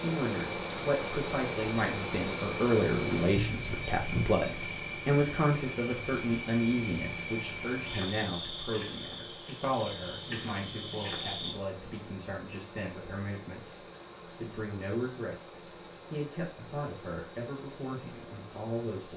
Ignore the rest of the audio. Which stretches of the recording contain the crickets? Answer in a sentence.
You can hear the crickets from 0.0 to 11.6 s.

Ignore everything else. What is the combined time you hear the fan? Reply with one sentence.
The fan can be heard for 19 seconds in total.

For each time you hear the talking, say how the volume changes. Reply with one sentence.
The talking can be heard from 0.0 to 19.1 s, getting quieter.